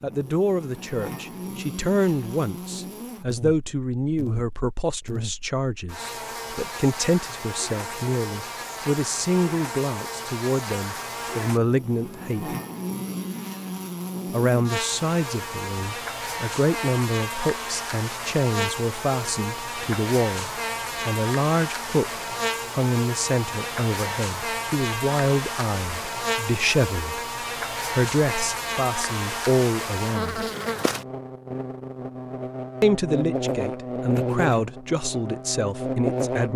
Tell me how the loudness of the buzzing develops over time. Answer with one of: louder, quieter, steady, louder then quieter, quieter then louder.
louder.